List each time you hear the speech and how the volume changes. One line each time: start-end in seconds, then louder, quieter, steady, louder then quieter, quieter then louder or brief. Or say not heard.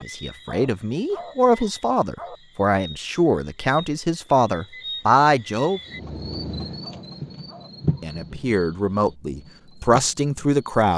0.0-5.8 louder
8.0-10.9 brief.